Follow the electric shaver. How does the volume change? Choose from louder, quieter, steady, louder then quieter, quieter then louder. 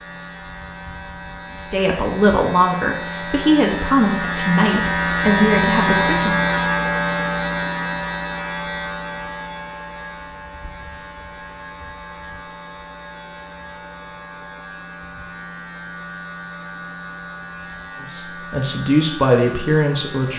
louder then quieter.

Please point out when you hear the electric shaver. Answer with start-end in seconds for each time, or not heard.
0.0-20.3.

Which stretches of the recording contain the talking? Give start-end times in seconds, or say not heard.
1.6-6.4, 18.0-20.3.